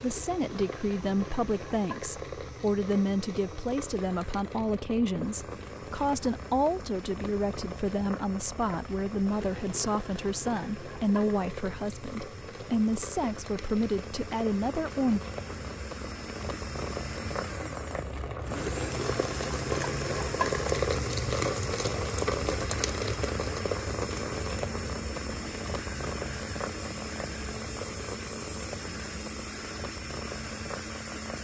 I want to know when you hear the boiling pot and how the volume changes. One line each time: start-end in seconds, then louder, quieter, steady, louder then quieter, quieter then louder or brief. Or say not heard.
0.0-31.3 louder then quieter.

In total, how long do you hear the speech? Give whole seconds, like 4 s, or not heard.
15 s.